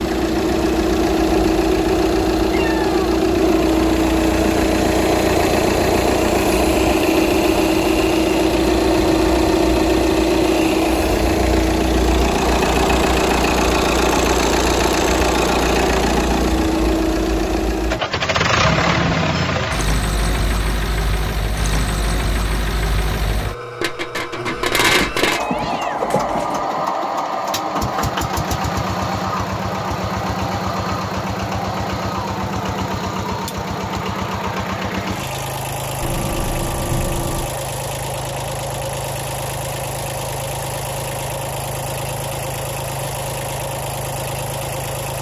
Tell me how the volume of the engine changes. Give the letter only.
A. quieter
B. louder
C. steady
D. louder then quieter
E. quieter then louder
A.